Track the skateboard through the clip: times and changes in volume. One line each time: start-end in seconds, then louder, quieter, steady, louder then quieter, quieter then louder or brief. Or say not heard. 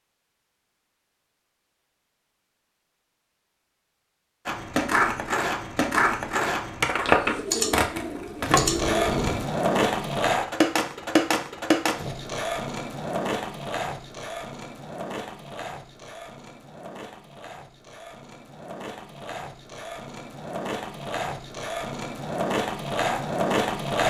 4.5-24.0 quieter then louder.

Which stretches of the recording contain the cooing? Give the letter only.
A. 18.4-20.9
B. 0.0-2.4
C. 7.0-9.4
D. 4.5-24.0
C.